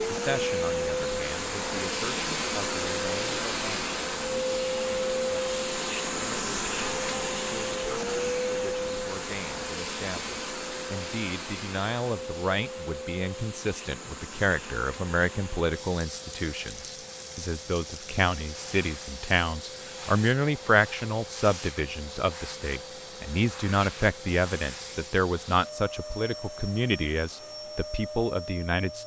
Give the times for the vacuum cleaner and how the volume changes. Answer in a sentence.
You can hear the vacuum cleaner from 0.0 to 29.0 s, getting quieter.